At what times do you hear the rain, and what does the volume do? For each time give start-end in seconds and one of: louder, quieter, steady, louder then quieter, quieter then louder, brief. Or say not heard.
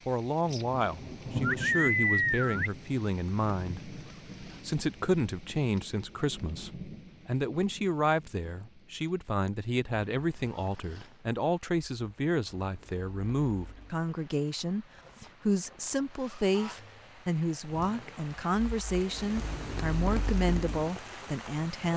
0.0-21.9 quieter then louder.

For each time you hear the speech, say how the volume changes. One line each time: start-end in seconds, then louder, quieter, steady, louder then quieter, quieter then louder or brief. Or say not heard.
0.1-21.9 steady.